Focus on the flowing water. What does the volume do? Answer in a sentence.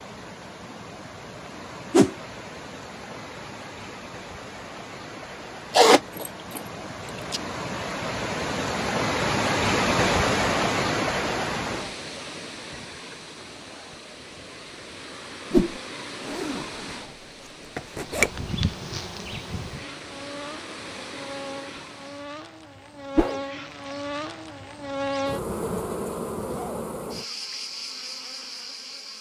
The loudness of the flowing water goes up, then down.